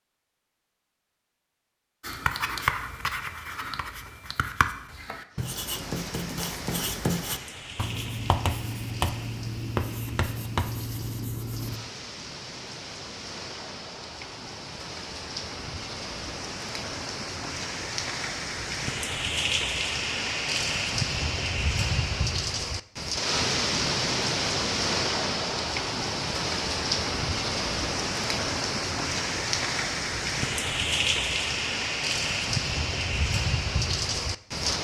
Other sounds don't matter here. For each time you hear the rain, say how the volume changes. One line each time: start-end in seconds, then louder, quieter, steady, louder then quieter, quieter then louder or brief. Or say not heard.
5.3-34.7 louder.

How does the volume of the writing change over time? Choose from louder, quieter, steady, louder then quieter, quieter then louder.
steady.